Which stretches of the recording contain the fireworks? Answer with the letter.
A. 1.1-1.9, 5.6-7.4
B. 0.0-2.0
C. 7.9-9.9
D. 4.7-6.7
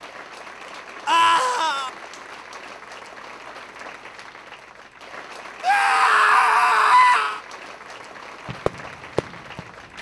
C.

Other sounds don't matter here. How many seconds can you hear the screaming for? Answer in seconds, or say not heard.
3 s.